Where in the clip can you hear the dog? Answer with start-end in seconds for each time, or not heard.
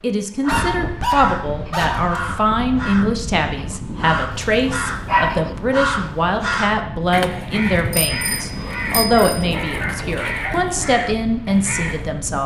0.5-2.4, 4.5-5.3, 9.1-10.6.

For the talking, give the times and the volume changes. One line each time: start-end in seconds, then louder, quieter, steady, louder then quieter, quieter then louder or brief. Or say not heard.
0.0-12.4 steady.